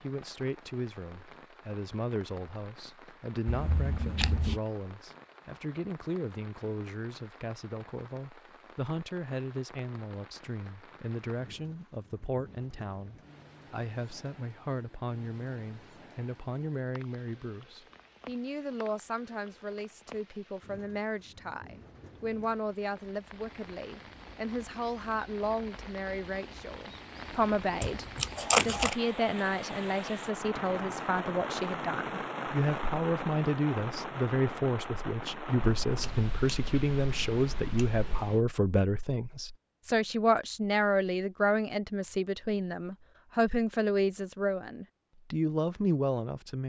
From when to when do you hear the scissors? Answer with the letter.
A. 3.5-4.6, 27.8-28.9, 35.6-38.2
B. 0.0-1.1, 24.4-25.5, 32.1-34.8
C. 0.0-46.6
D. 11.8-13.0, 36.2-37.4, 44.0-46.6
A.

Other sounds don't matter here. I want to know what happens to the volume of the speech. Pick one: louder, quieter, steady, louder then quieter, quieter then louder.
louder.